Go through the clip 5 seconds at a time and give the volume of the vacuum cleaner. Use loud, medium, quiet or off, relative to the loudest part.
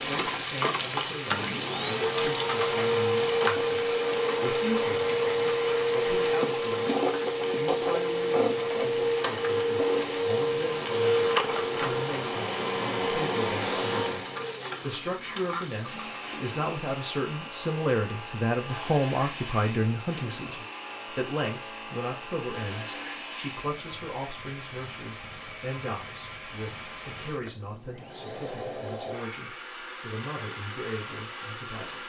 loud, loud, loud, quiet, quiet, quiet, quiet.